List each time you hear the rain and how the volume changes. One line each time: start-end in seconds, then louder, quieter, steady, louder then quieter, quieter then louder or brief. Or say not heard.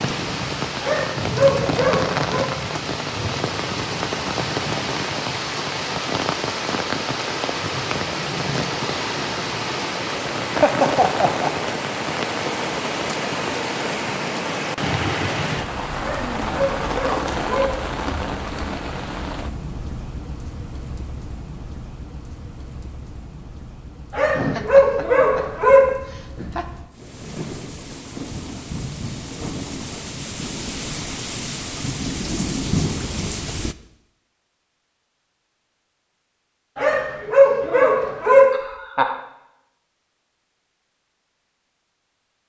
0.0-33.8 quieter then louder.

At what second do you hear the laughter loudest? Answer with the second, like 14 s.
11 s.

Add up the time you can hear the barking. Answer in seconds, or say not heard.
7 s.